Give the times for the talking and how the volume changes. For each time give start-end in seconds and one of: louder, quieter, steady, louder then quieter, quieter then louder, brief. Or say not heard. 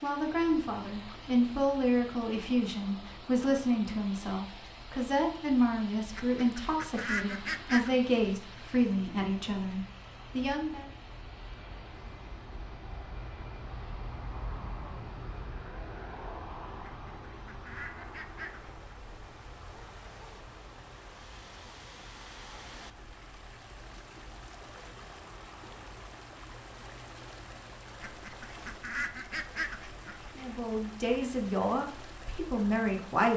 0.0-10.9 steady
30.4-33.3 brief.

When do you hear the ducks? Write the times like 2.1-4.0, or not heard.
6.2-7.9, 17.1-18.8, 28.0-30.4.